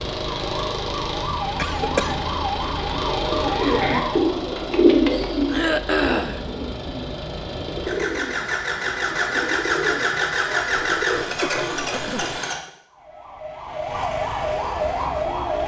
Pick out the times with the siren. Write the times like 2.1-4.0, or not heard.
0.0-4.4, 12.8-15.6.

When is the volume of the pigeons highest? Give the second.
5 s.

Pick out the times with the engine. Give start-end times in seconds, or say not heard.
0.0-12.6.